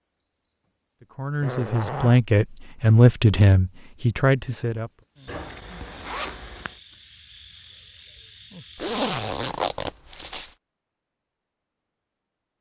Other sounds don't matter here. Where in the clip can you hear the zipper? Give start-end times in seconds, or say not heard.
1.4-2.2, 5.2-6.7, 8.8-10.4.